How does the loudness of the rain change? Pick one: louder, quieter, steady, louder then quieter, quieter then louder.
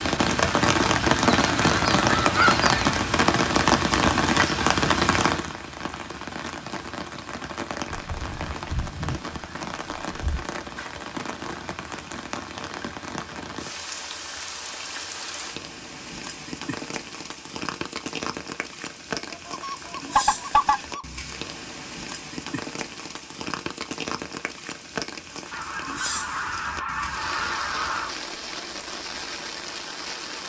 quieter.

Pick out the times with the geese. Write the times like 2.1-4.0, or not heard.
1.2-3.0, 7.9-10.6, 19.3-21.1, 25.5-28.1.